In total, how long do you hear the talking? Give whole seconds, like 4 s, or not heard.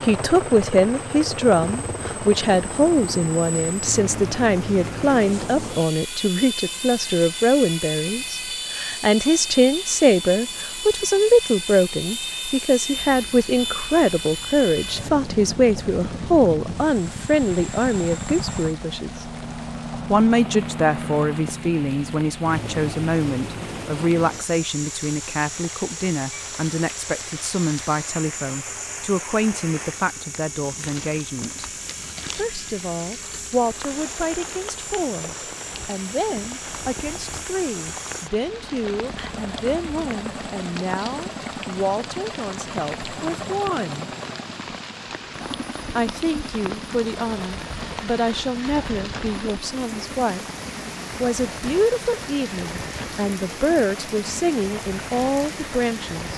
52 s.